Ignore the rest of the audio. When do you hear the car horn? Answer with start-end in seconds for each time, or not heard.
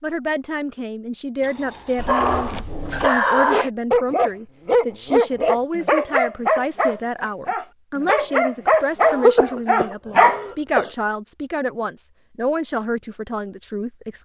not heard.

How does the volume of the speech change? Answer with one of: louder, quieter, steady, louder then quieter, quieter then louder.
steady.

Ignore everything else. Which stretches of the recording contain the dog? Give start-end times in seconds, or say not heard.
1.9-10.4.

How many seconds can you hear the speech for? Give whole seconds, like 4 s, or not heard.
14 s.